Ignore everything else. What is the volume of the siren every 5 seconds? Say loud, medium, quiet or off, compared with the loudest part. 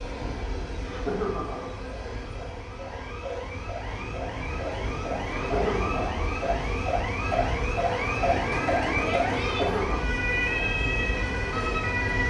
medium, loud, loud.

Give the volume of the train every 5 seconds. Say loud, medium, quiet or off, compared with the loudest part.
medium, loud, loud.